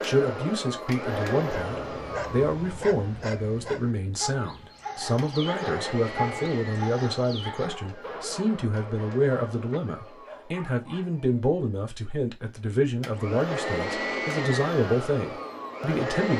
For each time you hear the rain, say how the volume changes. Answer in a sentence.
The rain can't be heard in this clip.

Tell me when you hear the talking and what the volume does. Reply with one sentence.
The talking can be heard from 0.0 to 16.3 s, at a steady volume.